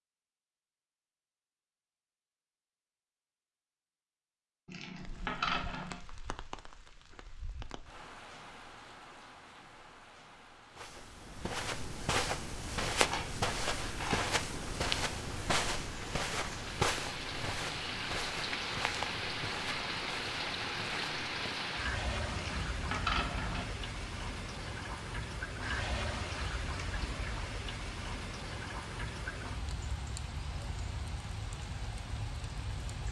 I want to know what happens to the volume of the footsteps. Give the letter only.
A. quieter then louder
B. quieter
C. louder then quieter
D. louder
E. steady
B.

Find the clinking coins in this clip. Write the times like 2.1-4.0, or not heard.
4.7-6.0, 12.9-14.7, 22.3-23.7.